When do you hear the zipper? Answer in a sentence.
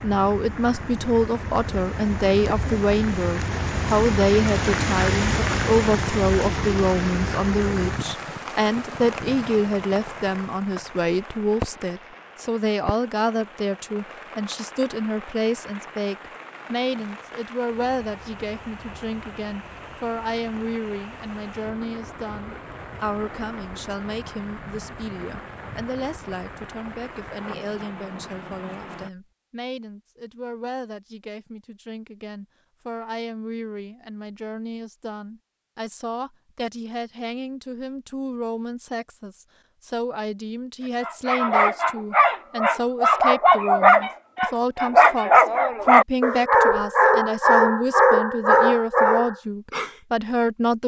The zipper can't be heard in this clip.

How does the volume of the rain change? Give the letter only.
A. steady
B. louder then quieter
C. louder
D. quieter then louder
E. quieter
E.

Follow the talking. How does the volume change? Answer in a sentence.
The loudness of the talking goes down, then up.